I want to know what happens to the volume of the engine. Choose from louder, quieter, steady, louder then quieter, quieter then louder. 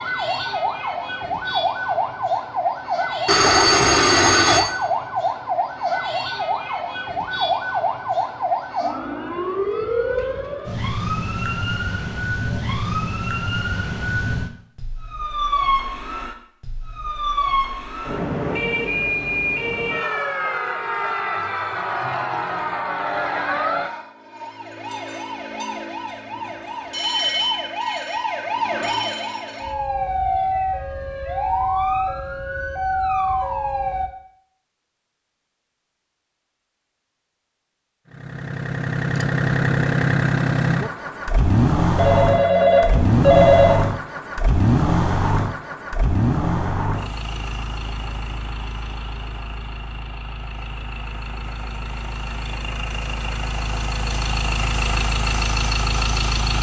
quieter then louder.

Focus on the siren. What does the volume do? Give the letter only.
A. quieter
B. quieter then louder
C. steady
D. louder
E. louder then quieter
C.